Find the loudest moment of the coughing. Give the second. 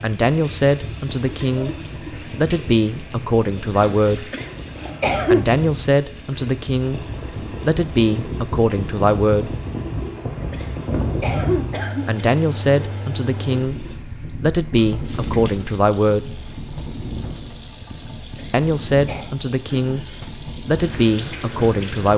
5 s.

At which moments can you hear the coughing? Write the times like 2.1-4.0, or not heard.
4.3-5.5, 10.5-12.2, 18.4-19.2.